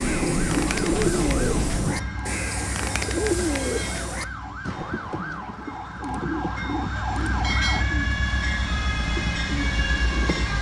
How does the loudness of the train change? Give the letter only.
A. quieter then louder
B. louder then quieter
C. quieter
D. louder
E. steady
A.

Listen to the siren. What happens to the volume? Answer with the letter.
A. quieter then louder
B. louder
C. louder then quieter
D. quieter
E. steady
B.